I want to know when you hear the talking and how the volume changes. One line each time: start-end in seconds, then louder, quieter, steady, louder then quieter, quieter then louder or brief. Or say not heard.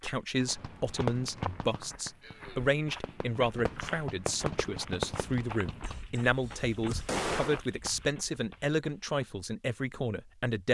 0.0-10.6 steady.